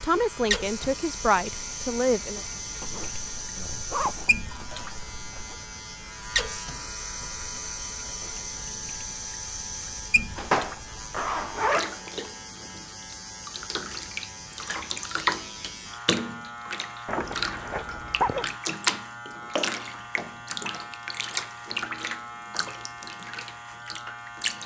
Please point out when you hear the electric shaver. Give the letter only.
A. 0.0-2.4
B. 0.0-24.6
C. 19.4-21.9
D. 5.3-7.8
B.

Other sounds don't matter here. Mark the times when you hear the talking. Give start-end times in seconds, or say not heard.
0.0-2.4.